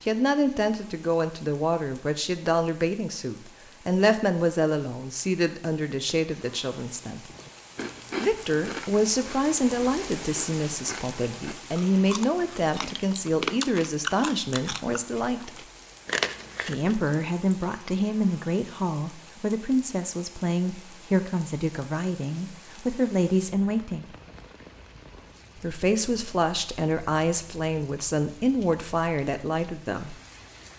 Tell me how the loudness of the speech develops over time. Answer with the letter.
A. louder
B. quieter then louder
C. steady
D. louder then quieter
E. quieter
C.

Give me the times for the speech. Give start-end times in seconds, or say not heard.
0.0-7.3, 8.2-15.5, 16.6-24.1, 25.6-30.1.